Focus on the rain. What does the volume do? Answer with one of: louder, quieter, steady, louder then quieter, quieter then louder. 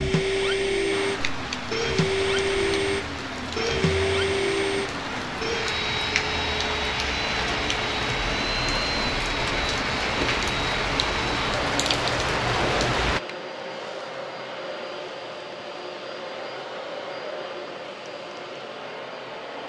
louder.